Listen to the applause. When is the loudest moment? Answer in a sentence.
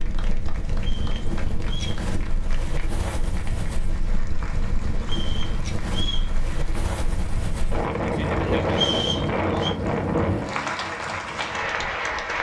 The volume of the applause peaks at 12 seconds.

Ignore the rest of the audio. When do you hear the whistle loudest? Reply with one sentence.
The volume of the whistle peaks at 9 seconds.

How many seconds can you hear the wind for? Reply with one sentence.
The wind can be heard for 12 seconds in total.